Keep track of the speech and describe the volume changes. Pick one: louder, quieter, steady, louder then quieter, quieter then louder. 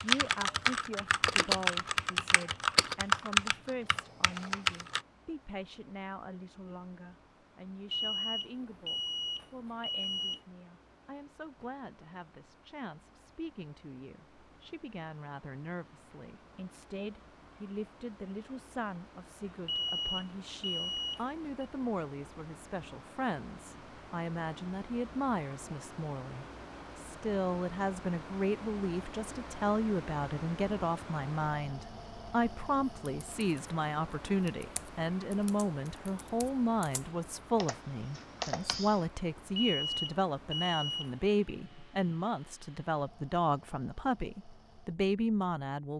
louder.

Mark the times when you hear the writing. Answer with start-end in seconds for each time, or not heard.
not heard.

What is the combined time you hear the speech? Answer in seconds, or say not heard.
46 s.